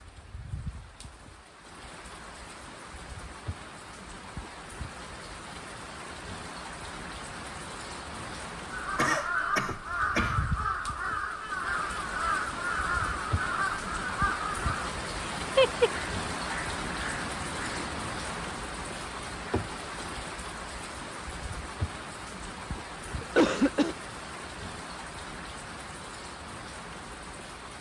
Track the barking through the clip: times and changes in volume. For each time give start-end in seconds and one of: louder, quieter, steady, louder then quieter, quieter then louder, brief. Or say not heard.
not heard.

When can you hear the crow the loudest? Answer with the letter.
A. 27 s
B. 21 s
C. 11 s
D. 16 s
D.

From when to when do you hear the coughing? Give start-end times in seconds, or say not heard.
8.9-10.4, 23.2-23.9.